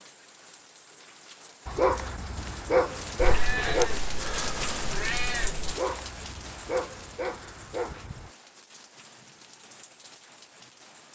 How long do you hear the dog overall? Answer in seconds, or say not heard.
5 s.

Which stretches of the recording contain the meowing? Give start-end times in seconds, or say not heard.
3.1-5.8.